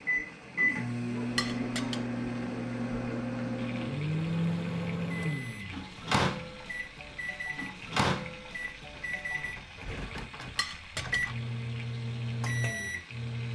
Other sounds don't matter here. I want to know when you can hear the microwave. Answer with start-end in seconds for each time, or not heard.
0.0-13.5.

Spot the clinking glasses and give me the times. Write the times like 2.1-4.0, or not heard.
1.4-2.0, 10.6-11.2.